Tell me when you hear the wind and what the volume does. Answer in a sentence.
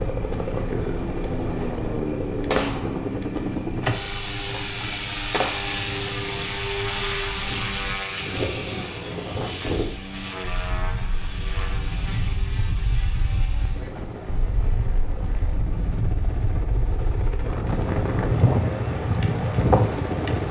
The wind can be heard from 0.0 to 20.4 s, getting louder.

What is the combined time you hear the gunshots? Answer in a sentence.
The gunshots can be heard for 3 seconds in total.